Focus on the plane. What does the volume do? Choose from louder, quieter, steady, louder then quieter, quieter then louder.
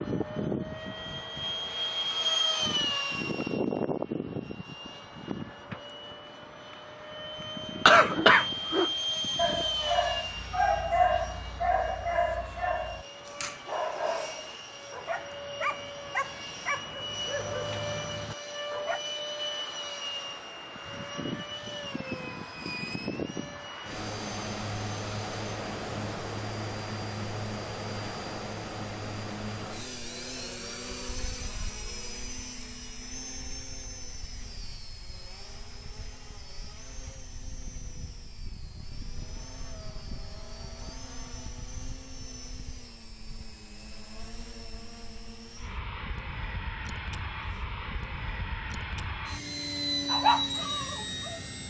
quieter then louder.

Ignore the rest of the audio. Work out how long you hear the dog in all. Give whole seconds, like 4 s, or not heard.
12 s.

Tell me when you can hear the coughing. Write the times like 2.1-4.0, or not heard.
7.8-8.9.